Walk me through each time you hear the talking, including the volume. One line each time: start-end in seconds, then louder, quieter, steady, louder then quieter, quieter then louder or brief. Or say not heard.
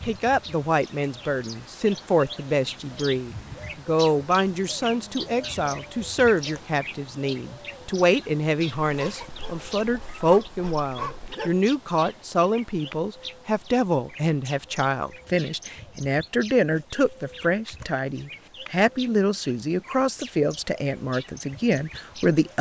0.1-22.5 steady.